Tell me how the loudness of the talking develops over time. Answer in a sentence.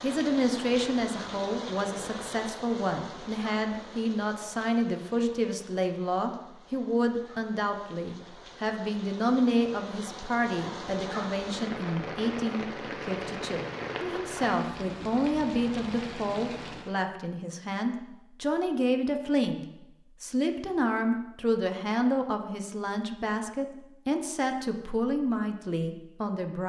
The volume of the talking stays about the same.